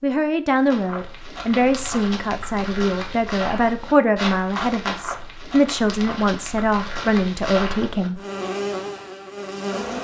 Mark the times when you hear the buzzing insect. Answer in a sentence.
The buzzing insect can be heard from 8.2 to 9.9 s.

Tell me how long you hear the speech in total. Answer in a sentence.
You can hear the speech for 8 seconds altogether.